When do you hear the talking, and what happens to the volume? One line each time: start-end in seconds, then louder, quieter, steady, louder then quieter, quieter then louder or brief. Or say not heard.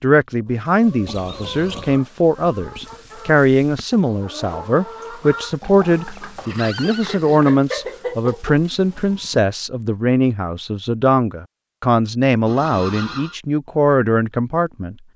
0.0-14.9 steady.